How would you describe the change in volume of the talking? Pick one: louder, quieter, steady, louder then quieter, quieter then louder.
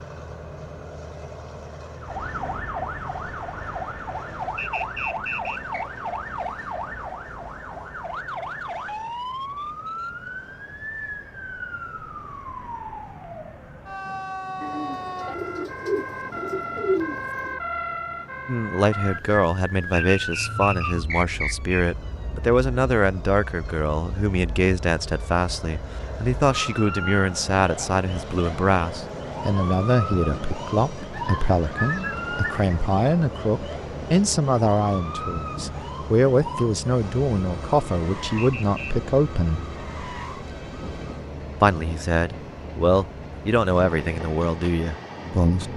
steady.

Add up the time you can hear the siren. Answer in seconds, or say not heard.
39 s.